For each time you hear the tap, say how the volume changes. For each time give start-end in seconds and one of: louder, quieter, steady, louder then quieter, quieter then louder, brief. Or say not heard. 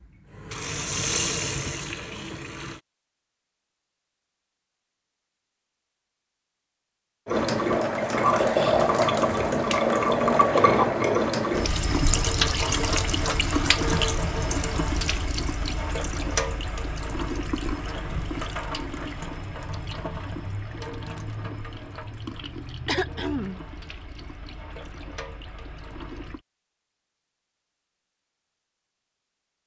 0.0-2.8 brief
7.2-26.4 quieter.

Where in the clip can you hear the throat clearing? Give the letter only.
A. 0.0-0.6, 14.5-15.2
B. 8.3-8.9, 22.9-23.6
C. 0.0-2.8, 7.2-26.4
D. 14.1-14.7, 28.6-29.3
B.